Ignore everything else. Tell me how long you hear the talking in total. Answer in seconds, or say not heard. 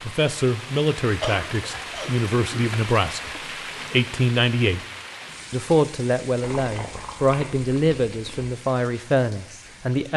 9 s.